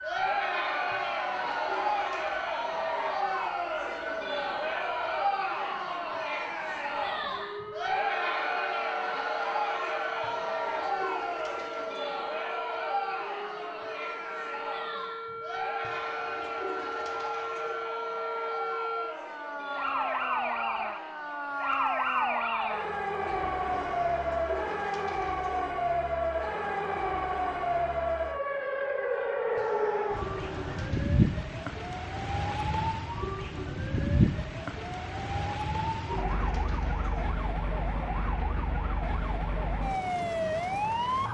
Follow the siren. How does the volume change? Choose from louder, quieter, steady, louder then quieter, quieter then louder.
louder.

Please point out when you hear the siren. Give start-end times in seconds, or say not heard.
0.0-41.2.